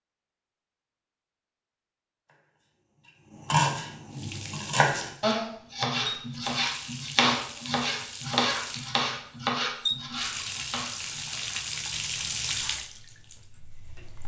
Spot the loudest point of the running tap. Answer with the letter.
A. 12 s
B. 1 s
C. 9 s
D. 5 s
A.